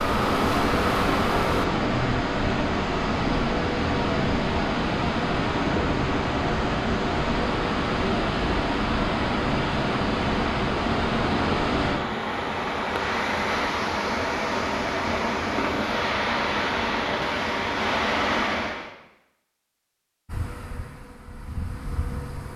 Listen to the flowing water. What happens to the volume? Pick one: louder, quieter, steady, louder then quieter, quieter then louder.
steady.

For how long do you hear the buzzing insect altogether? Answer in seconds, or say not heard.
4 s.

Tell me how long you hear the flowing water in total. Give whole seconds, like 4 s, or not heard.
19 s.